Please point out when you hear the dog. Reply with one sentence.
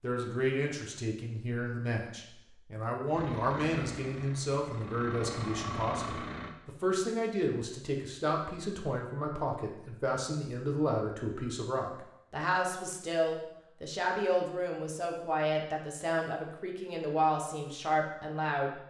The dog can't be heard in this clip.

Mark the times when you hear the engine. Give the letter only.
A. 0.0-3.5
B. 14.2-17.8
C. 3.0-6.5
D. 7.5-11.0
C.